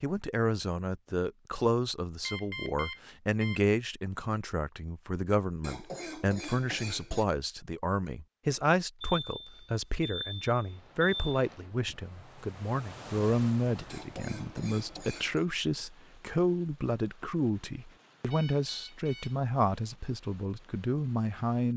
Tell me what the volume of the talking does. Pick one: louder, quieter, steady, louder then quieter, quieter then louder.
steady.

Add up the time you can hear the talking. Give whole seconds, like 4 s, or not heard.
22 s.